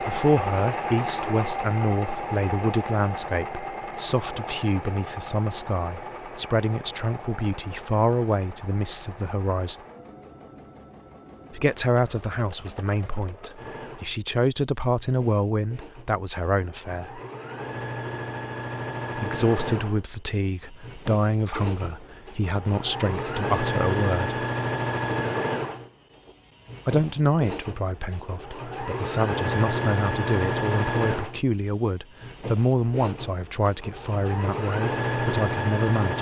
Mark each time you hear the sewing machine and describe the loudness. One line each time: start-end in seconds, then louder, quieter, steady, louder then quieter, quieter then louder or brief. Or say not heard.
0.0-36.1 quieter then louder.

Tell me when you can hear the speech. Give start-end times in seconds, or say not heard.
0.0-9.8, 11.5-17.2, 19.1-24.4, 26.9-36.1.